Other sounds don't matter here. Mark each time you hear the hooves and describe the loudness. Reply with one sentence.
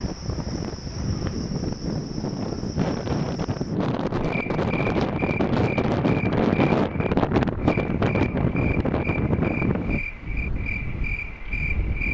The hooves can't be heard in this clip.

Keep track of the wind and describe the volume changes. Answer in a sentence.
The loudness of the wind goes up, then down.